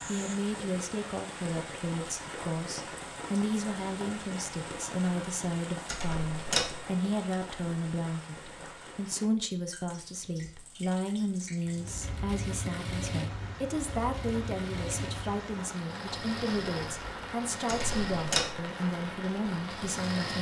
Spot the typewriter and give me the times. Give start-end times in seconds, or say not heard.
not heard.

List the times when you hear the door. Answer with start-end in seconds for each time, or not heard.
5.8-6.8, 17.6-18.6.